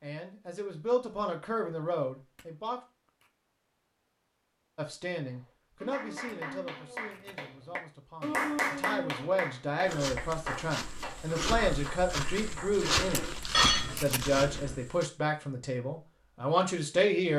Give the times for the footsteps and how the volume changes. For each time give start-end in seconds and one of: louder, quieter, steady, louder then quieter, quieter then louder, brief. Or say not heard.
9.8-15.1 louder then quieter.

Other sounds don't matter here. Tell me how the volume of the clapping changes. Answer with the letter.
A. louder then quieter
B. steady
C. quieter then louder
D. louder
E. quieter
A.